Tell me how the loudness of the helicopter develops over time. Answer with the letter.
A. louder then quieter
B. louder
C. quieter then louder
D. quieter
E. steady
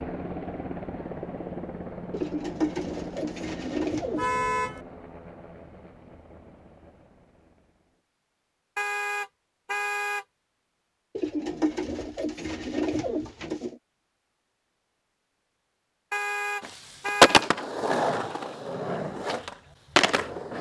D.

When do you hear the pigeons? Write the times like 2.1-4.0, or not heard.
2.1-4.3, 11.2-13.8.